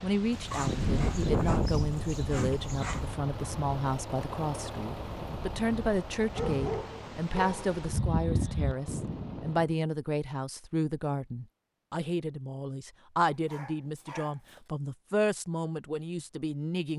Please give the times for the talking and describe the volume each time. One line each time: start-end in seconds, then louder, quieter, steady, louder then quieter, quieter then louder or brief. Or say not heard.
0.0-16.9 steady.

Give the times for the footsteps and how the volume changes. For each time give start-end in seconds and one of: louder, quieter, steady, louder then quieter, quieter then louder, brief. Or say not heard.
not heard.